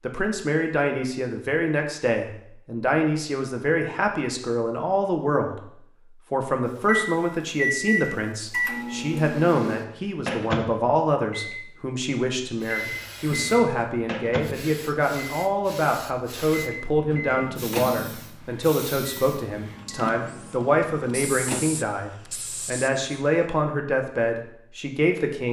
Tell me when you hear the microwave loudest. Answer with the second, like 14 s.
8 s.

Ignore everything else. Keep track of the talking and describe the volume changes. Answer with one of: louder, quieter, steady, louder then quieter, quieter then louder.
steady.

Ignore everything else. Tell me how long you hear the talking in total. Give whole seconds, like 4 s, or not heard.
25 s.